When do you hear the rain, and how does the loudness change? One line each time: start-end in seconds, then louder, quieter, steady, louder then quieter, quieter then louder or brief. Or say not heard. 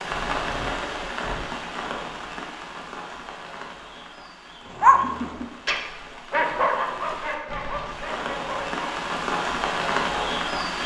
0.0-10.8 quieter then louder.